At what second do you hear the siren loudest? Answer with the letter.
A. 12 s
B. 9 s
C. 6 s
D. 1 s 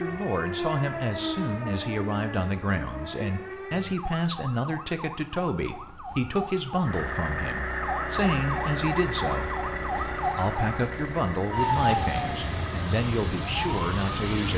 A.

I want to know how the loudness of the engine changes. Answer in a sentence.
The volume of the engine goes down.